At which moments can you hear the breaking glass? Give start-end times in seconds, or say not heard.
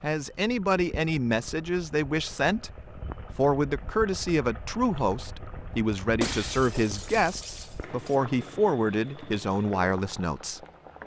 6.2-8.2.